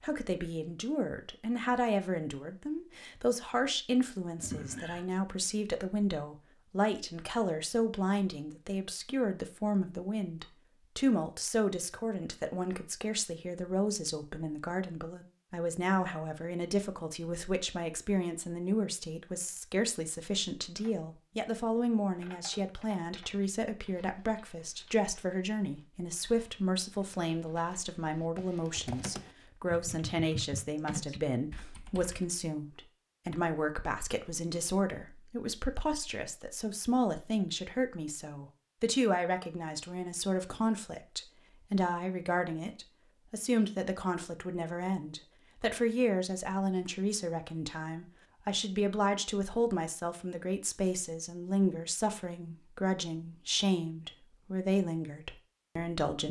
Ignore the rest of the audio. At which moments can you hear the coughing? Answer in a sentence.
The coughing can be heard from 4.4 to 5.0 s.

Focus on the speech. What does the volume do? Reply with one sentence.
The loudness of the speech stays about the same.